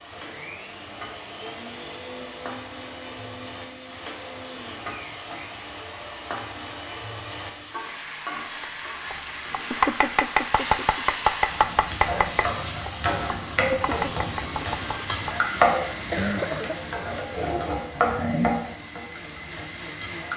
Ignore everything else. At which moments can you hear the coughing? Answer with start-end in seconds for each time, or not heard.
15.9-16.9.